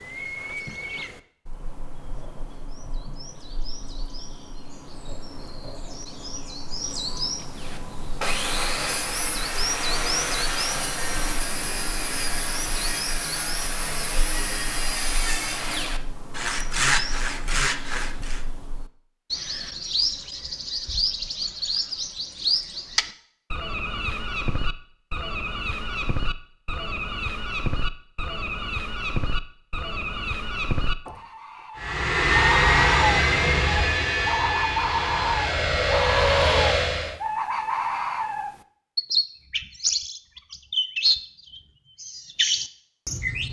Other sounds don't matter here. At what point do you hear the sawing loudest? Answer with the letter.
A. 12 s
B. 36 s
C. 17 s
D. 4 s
C.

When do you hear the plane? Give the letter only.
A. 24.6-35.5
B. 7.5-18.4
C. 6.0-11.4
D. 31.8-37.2
D.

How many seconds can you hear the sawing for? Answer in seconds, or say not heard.
11 s.